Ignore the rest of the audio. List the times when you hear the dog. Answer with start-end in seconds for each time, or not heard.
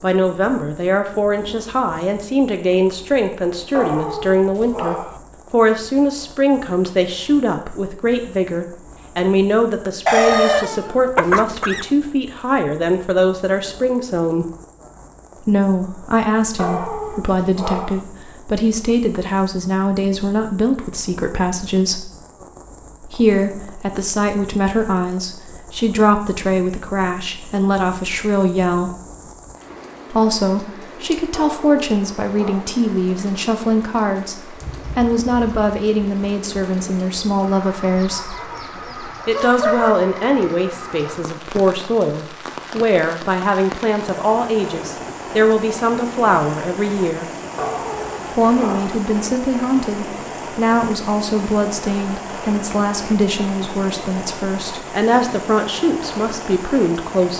3.7-5.2, 16.6-18.1, 31.3-32.8, 47.5-49.0.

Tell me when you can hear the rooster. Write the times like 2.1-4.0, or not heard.
10.1-11.9, 38.0-40.0.